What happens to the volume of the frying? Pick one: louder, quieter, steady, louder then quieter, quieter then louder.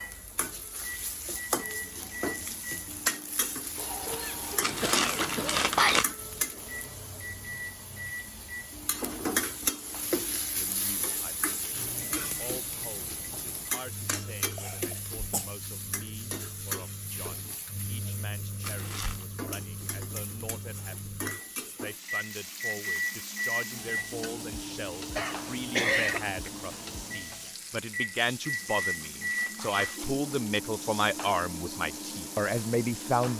quieter.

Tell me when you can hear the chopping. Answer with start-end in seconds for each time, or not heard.
not heard.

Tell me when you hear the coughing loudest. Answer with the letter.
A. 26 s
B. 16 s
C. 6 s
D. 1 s
A.